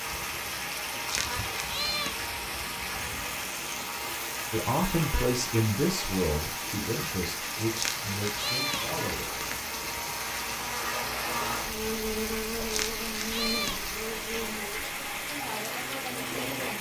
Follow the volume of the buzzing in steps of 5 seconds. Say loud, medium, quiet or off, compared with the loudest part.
medium, medium, loud, medium.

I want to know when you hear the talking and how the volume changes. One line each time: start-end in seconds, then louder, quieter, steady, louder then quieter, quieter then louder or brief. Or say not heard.
4.5-9.4 quieter
15.2-16.7 brief.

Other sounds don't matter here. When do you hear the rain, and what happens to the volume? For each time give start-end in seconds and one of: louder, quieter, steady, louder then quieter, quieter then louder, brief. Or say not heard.
0.0-16.7 steady.